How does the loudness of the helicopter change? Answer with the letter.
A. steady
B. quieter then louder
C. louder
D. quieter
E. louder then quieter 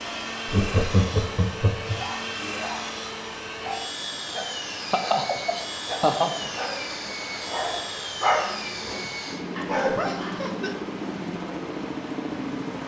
A.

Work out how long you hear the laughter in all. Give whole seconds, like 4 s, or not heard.
4 s.